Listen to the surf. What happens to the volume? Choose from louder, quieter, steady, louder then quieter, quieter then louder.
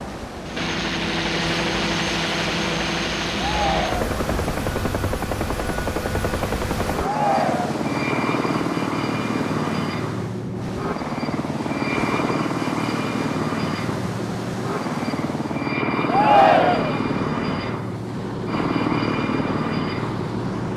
steady.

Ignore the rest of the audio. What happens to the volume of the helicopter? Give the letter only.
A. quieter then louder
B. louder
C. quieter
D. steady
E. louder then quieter
D.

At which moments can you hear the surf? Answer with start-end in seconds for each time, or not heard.
0.0-20.7.